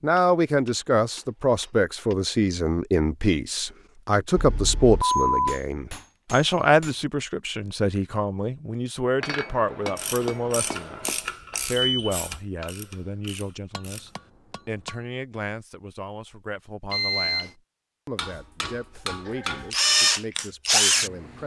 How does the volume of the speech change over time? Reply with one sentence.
The volume of the speech goes down.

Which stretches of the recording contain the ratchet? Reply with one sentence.
You can hear the ratchet from 9.9 to 14.2 s.